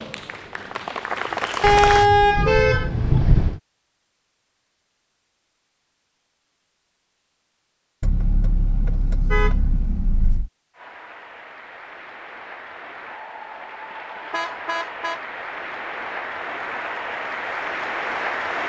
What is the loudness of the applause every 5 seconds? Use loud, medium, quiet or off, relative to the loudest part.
loud, off, medium, loud.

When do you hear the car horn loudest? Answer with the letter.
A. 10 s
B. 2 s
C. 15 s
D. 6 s
B.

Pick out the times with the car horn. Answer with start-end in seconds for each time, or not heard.
1.6-3.6, 8.0-10.5, 14.3-15.2.